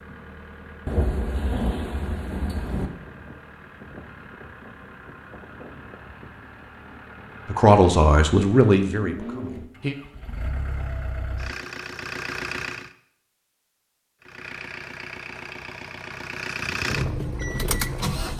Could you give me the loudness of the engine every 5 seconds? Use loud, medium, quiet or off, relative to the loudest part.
quiet, medium, medium, loud.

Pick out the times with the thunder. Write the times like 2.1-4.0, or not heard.
0.8-2.9.